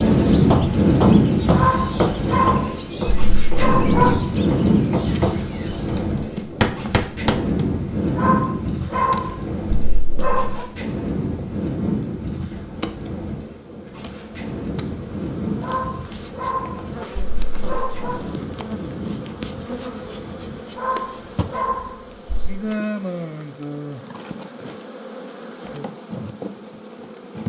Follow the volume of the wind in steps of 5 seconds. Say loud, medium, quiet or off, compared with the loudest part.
loud, medium, medium, quiet, quiet, off.